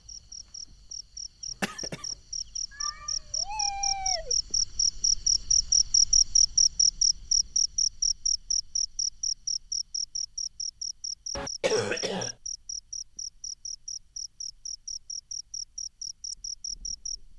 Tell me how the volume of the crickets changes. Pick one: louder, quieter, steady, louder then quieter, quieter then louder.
louder then quieter.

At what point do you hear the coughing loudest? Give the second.
12 s.